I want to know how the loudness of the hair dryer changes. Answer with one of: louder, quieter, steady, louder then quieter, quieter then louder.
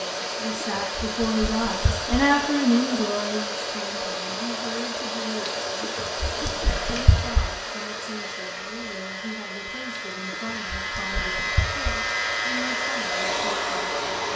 quieter then louder.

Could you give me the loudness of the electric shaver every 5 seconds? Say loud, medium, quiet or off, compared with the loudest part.
off, medium, loud.